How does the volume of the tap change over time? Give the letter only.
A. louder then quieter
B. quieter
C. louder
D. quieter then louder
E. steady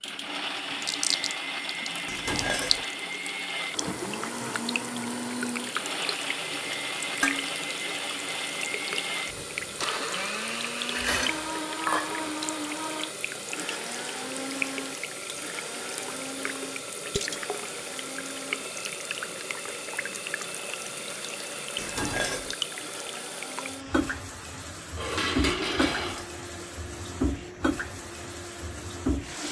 E.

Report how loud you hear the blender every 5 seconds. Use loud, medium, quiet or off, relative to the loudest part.
loud, loud, loud, medium, medium, medium.